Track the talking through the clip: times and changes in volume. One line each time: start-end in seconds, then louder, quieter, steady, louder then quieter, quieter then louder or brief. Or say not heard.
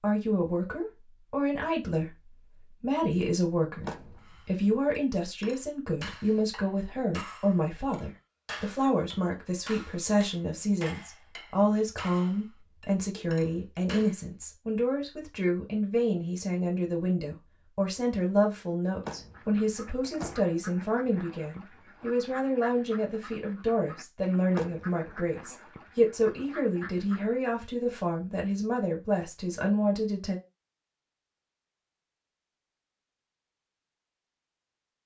0.0-30.4 steady.